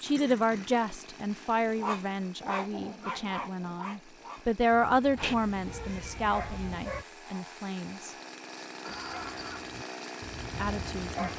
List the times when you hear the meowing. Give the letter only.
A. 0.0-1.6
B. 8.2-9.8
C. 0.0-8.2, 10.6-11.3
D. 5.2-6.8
D.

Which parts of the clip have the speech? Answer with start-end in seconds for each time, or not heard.
0.0-8.2, 10.6-11.3.